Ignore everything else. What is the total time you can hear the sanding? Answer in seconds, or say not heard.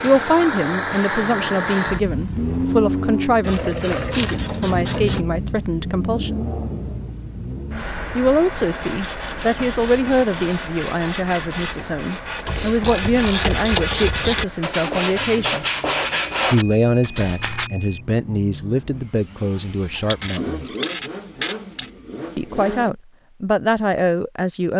9 s.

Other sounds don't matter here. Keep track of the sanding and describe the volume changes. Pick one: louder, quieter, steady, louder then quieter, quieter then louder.
louder.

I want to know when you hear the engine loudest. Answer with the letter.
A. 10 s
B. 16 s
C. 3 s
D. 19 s
C.